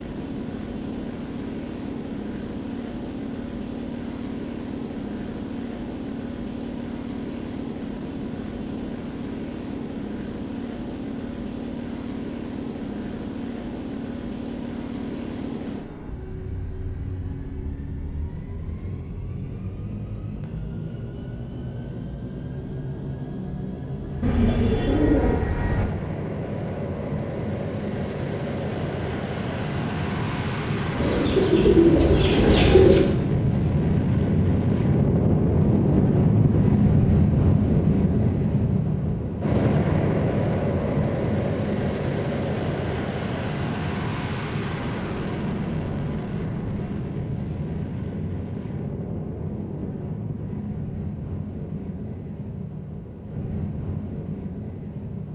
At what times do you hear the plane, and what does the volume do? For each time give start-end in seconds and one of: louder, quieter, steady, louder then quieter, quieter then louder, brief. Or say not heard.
0.0-55.3 louder then quieter.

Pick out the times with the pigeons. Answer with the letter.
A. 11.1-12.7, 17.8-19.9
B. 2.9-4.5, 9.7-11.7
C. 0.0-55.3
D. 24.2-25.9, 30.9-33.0
D.